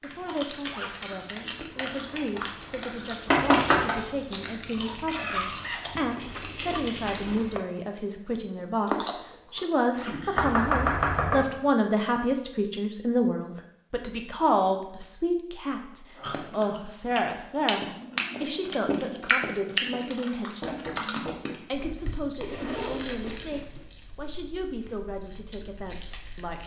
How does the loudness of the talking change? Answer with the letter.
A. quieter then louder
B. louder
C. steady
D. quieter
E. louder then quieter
E.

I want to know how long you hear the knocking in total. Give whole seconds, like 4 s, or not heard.
3 s.